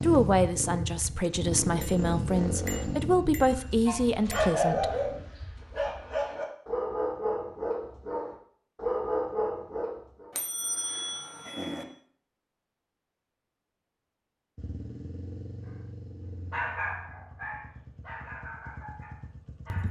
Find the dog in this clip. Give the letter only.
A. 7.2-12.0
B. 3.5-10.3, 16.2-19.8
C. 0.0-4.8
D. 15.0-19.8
B.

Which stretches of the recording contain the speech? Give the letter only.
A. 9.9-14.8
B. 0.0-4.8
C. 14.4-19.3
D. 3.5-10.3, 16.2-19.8
B.